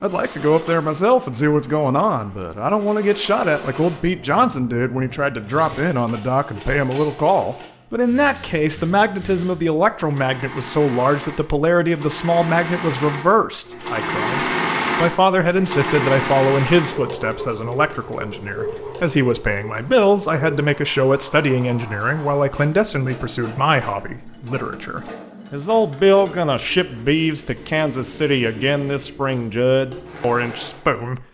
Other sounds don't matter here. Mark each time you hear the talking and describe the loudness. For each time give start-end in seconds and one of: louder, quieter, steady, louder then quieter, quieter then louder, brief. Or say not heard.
0.0-31.2 steady.